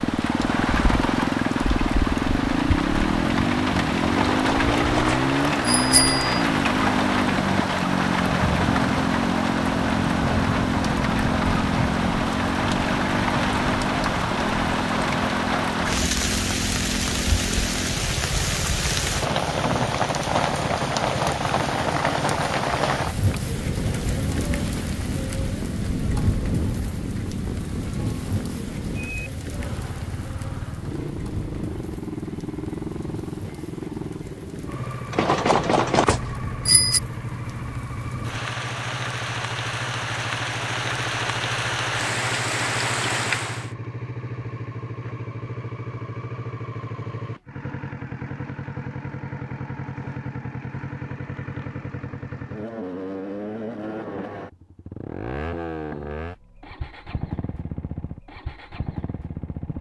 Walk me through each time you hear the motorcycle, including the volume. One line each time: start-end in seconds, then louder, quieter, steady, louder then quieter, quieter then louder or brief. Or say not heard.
0.0-59.7 quieter.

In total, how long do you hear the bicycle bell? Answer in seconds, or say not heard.
4 s.